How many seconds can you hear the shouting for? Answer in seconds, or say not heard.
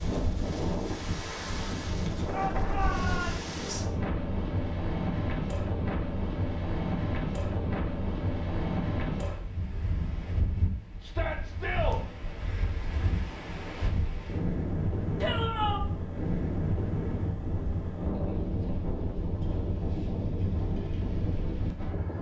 3 s.